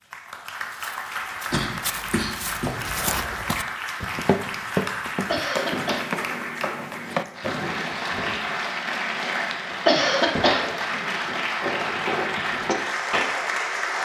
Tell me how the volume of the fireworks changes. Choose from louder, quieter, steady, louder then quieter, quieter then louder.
louder.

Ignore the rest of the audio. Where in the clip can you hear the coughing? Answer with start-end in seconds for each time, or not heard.
1.5-3.1, 5.2-6.1, 9.8-10.7.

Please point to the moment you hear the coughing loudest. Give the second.
10 s.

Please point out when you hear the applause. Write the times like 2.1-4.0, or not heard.
0.0-14.0.